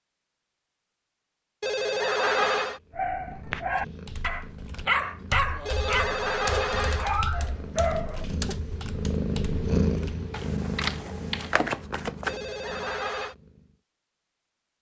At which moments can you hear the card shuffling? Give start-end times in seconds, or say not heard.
10.7-12.4.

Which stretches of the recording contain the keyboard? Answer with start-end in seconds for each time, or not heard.
4.0-11.6.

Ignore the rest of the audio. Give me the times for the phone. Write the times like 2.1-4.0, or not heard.
1.6-2.8, 5.7-7.1, 12.2-13.3.